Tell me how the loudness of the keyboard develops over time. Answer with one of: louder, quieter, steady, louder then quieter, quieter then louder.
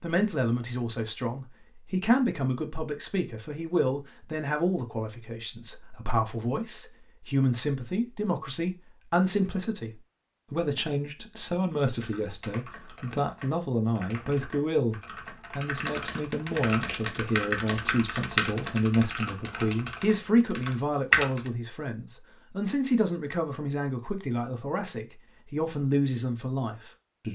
louder then quieter.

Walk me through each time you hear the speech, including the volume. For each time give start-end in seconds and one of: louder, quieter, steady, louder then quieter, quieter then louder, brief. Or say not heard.
0.0-27.3 steady.